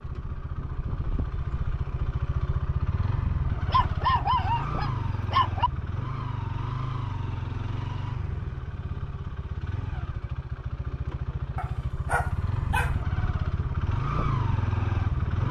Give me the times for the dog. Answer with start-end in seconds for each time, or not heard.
3.6-5.7, 11.6-13.0.